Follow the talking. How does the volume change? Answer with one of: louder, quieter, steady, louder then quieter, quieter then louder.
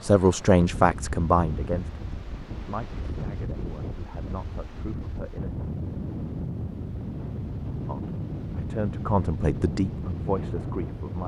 quieter then louder.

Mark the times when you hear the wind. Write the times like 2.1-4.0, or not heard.
0.0-11.2.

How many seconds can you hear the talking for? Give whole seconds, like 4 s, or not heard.
9 s.